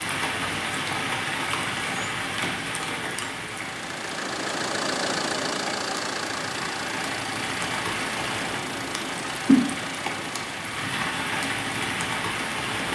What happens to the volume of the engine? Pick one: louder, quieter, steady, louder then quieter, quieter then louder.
quieter.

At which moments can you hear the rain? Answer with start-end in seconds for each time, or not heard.
0.0-12.8.